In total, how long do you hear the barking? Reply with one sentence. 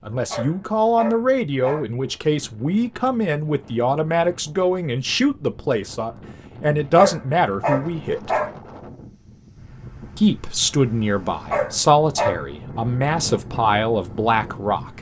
The barking can be heard for 5 seconds in total.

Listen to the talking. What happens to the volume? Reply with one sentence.
The loudness of the talking stays about the same.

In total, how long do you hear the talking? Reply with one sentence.
You can hear the talking for 13 seconds altogether.